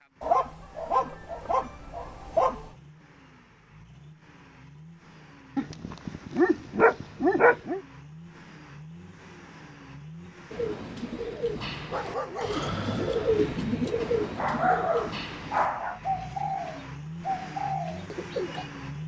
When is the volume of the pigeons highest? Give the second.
13 s.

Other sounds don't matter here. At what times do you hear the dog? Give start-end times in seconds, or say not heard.
0.2-2.7, 5.5-7.8, 11.7-12.7, 14.3-16.0.